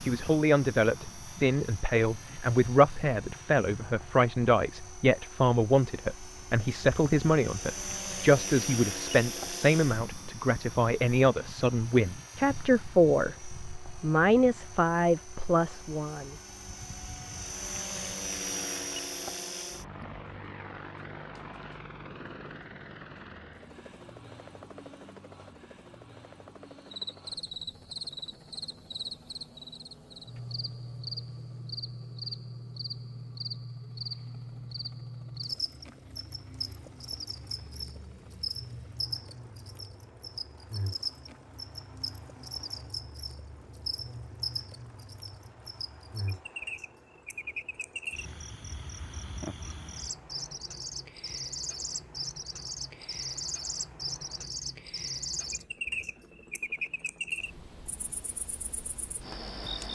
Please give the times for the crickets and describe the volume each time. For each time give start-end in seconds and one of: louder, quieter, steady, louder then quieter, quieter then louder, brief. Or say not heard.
26.9-59.9 steady.